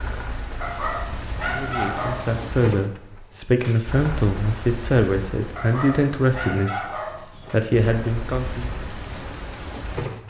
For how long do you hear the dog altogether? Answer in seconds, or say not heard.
4 s.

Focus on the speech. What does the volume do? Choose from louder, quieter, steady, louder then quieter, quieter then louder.
steady.